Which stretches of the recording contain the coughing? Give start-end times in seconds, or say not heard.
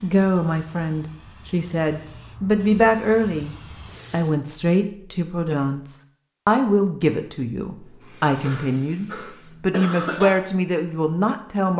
8.4-10.3.